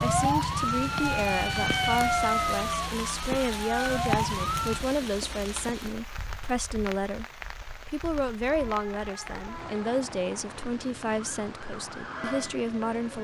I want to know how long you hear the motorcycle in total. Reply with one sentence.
You can't hear the motorcycle here.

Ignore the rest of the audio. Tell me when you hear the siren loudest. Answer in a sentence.
The loudest moment of the siren is at 2 seconds.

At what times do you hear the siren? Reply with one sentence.
The siren can be heard from 0.0 to 4.8 s and from 11.2 to 13.1 s.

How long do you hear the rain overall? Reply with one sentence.
The rain can be heard for 13 seconds in total.